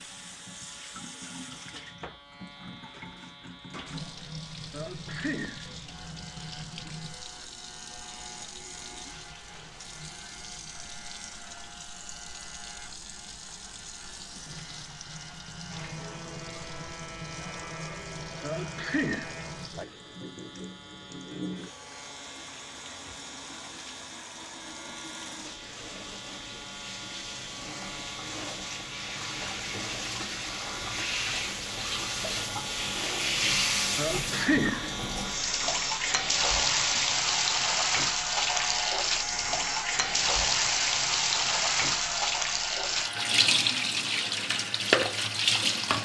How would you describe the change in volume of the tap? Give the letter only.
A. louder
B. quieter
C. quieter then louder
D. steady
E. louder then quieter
A.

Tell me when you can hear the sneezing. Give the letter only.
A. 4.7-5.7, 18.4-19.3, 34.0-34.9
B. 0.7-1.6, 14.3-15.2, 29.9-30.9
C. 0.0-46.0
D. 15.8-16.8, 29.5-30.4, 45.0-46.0
A.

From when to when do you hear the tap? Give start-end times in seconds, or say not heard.
0.0-46.0.